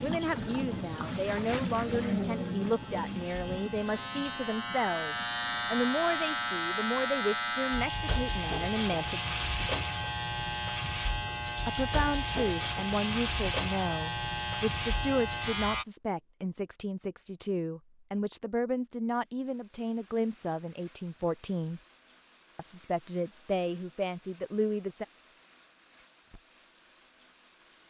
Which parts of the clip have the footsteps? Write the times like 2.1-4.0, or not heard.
not heard.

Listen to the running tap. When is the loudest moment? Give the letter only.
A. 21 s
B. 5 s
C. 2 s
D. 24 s
C.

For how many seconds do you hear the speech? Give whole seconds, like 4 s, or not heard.
22 s.